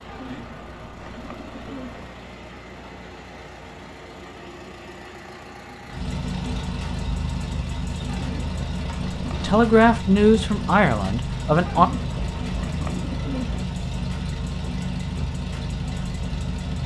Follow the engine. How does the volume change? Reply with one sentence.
The volume of the engine goes up.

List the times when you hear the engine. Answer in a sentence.
You can hear the engine from 0.0 to 16.8 s.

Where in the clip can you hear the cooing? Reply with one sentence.
The cooing can be heard from 0.1 to 2.1 s, from 8.1 to 9.6 s and from 11.7 to 13.7 s.